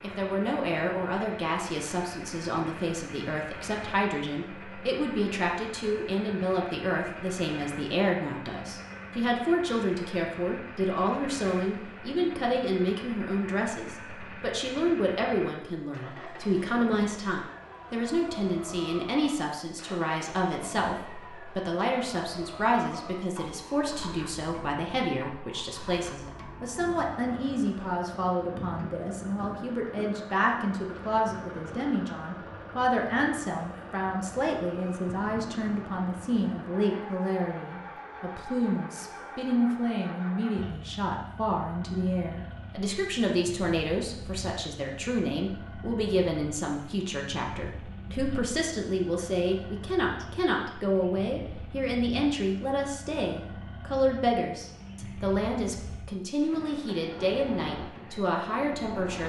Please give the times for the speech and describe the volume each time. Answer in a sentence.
You can hear the speech from 0.0 to 59.2 s, at a steady volume.